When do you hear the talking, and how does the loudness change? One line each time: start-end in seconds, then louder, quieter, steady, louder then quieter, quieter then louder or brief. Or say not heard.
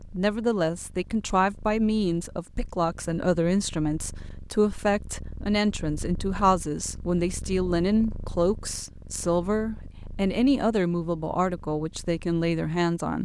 0.1-13.2 steady.